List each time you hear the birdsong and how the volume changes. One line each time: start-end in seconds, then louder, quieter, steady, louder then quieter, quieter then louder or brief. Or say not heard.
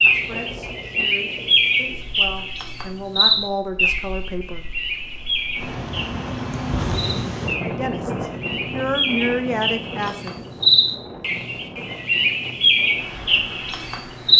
0.0-14.3 quieter then louder.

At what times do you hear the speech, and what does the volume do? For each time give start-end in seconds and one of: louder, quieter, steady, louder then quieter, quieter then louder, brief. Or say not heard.
0.1-4.7 louder
7.6-10.4 brief.